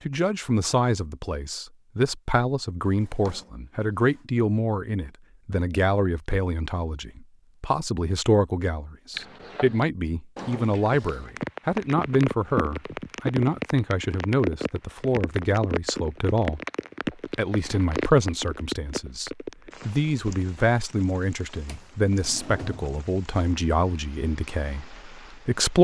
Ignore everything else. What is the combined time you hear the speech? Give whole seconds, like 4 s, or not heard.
25 s.